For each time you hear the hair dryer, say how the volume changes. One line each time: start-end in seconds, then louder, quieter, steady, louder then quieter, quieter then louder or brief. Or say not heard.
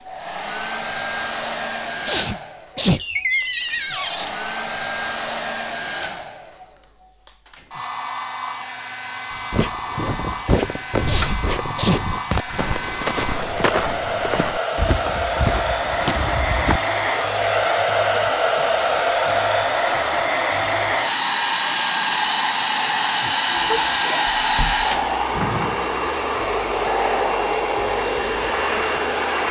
0.0-29.4 louder.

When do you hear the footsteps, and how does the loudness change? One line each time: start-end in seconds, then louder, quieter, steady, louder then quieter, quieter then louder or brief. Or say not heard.
9.3-16.8 steady.